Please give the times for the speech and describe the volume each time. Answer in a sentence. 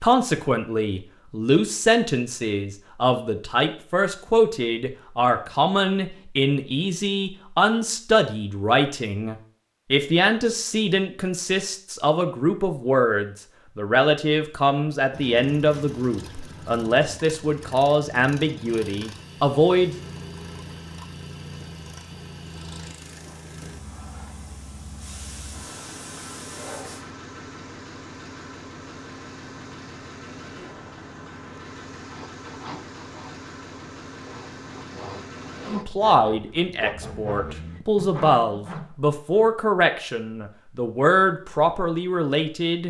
You can hear the speech from 0.0 to 19.9 s, at a steady volume; and from 35.6 to 42.8 s, at a steady volume.